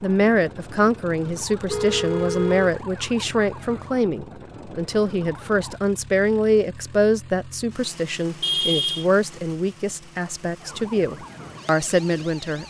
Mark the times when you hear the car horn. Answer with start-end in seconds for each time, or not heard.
1.6-2.7, 8.4-9.1.